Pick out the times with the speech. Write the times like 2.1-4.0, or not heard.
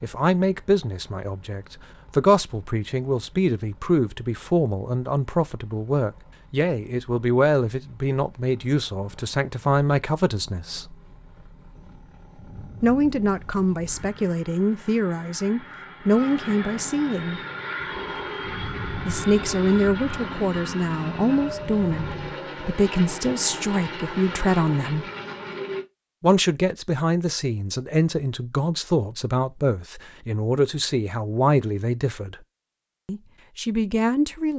0.0-10.9, 12.8-17.4, 19.1-25.1, 26.2-32.4, 33.0-34.5.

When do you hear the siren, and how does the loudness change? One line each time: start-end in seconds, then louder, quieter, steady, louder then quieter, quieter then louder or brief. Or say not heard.
not heard.